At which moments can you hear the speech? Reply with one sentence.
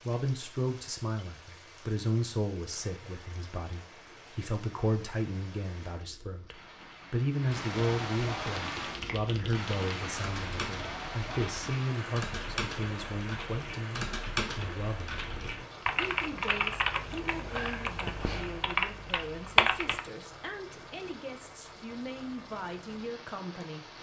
You can hear the speech from 0.0 to 23.9 s.